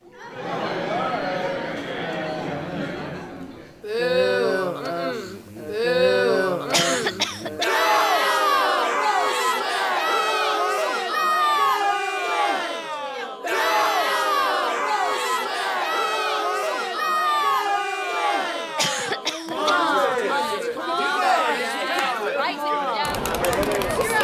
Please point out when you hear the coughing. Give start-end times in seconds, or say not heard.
6.7-7.7, 18.8-19.8.